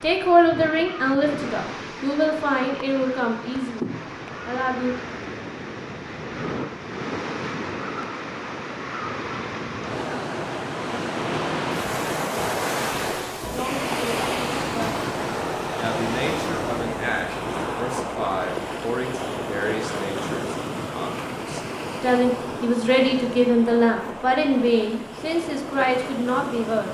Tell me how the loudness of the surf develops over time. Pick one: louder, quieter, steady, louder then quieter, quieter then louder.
louder then quieter.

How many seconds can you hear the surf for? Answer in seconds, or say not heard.
27 s.